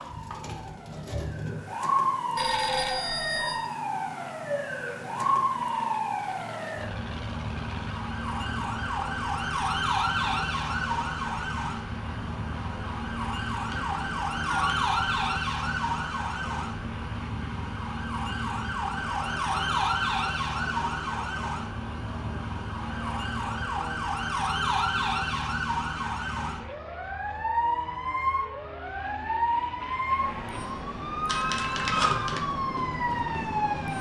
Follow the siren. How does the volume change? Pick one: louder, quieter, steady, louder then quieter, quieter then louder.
steady.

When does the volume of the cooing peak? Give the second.
1 s.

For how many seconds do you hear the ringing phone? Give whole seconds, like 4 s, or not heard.
4 s.